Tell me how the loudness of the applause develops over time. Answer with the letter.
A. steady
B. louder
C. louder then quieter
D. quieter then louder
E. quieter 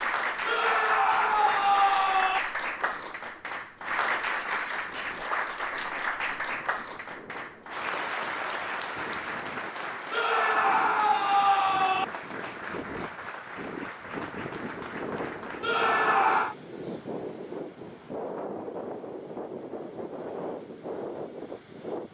E.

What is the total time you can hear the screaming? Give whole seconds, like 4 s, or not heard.
5 s.